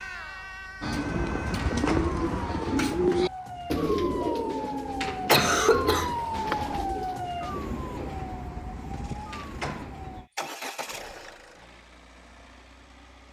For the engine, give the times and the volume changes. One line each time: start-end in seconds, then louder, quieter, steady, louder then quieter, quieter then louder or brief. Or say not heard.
8.8-13.2 louder then quieter.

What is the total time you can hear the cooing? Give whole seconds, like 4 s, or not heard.
7 s.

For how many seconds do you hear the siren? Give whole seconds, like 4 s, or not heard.
10 s.